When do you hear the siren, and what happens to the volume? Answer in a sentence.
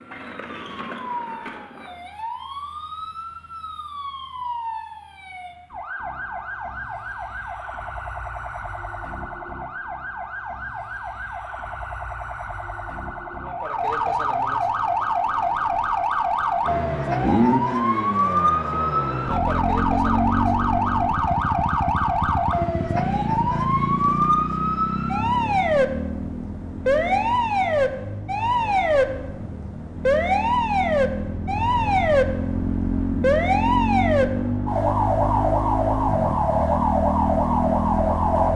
You can hear the siren from 0.0 to 38.5 s, getting louder.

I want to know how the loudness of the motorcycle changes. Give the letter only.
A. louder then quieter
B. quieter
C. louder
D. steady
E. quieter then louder
E.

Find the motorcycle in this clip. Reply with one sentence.
You can hear the motorcycle from 16.6 to 38.5 s.